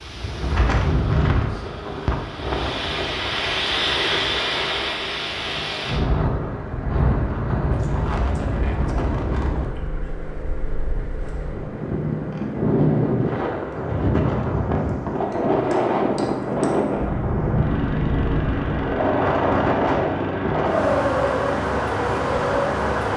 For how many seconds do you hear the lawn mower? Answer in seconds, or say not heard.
23 s.